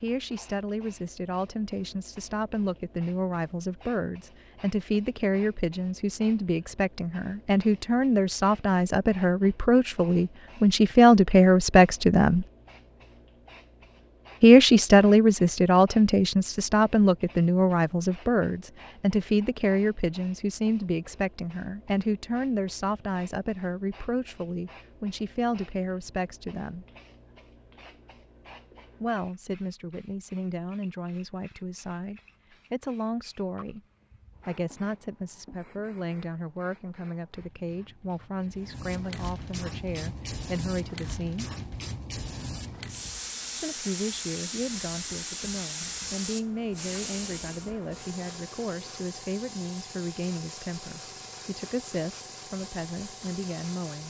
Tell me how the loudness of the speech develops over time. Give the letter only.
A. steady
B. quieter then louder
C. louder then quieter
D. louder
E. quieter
C.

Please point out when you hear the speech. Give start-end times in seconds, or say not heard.
0.0-12.4, 14.4-26.9, 29.0-33.8, 34.5-41.5, 43.5-54.0.